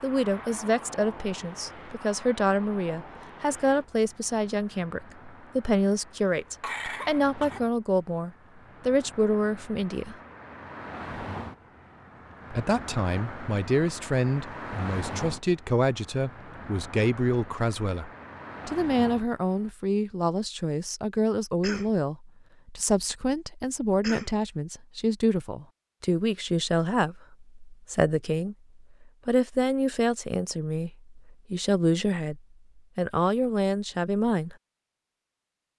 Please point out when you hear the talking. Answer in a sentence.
You can hear the talking from 0.0 to 10.2 s and from 12.5 to 34.5 s.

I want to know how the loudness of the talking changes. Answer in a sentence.
The volume of the talking stays about the same.